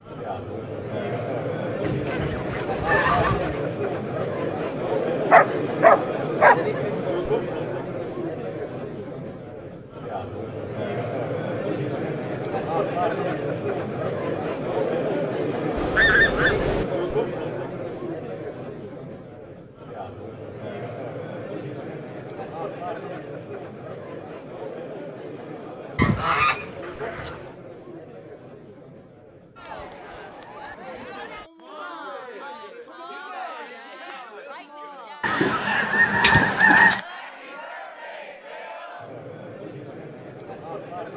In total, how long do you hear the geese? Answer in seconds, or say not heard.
6 s.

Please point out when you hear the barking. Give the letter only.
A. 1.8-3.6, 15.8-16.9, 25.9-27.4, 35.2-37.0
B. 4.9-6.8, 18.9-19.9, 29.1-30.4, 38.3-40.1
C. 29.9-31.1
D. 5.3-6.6
D.